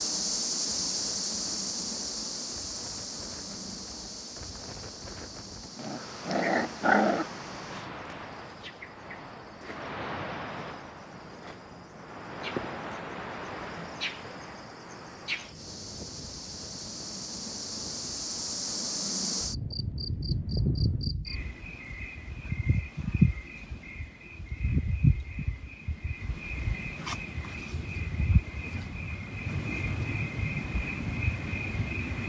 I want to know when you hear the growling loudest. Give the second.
7 s.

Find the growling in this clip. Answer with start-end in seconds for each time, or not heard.
5.8-7.3.